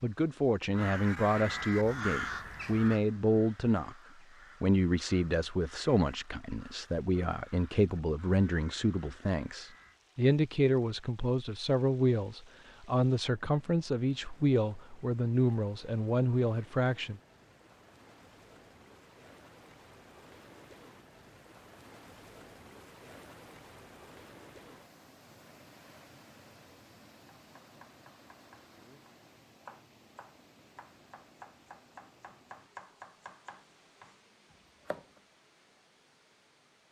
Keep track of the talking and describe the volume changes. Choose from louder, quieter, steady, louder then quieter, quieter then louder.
steady.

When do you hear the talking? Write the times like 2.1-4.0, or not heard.
0.0-4.0, 4.6-17.2.